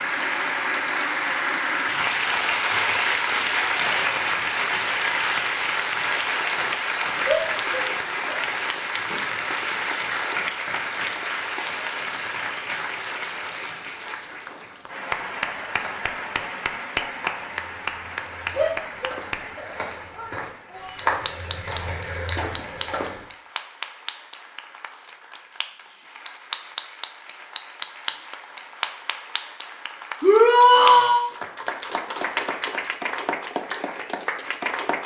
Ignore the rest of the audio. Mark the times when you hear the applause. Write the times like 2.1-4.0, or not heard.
0.0-35.0.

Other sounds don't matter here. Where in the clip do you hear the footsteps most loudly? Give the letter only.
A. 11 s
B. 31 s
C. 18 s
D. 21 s
D.